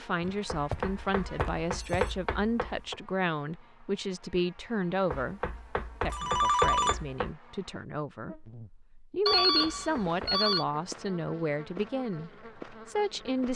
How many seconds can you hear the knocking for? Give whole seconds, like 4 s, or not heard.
6 s.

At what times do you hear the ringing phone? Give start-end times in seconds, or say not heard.
0.2-2.1, 6.1-7.0, 9.2-10.7.